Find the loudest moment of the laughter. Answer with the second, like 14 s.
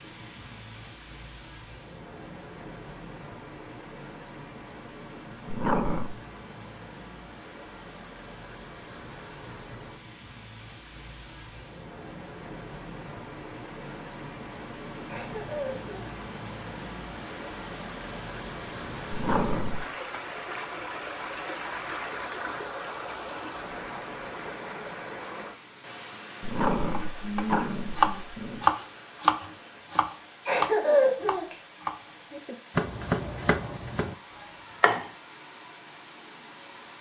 31 s.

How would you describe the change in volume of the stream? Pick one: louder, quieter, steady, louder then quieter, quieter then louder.
louder then quieter.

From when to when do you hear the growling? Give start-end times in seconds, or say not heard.
5.5-6.1, 19.1-19.9, 26.4-28.6.